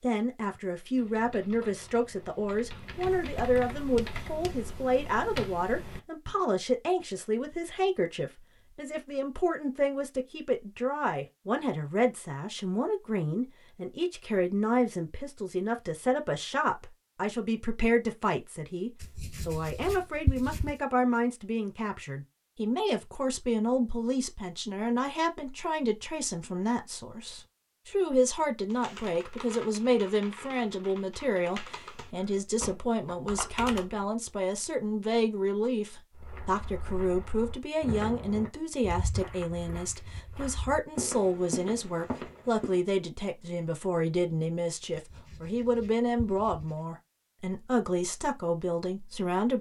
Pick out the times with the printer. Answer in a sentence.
You can't hear the printer here.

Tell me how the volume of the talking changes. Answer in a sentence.
The volume of the talking stays about the same.